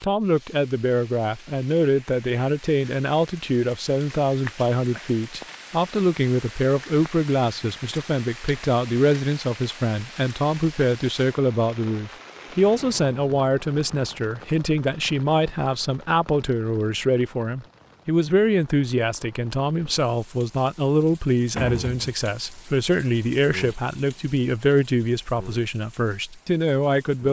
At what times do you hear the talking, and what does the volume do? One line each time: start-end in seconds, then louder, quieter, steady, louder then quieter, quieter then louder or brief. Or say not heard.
0.0-27.2 steady.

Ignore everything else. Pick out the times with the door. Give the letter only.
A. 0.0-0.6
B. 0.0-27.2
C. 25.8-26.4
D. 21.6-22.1
D.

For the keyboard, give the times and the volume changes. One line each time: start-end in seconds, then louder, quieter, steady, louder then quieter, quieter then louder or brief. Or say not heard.
not heard.